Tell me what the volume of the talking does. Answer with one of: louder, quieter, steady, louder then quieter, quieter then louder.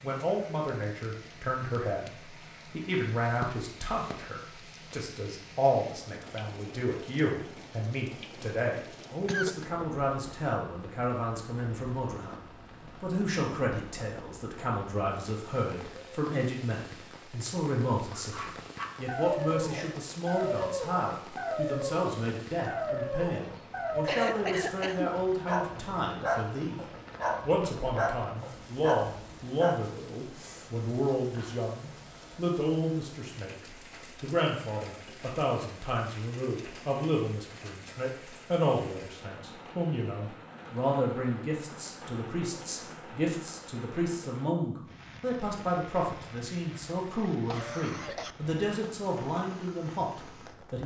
steady.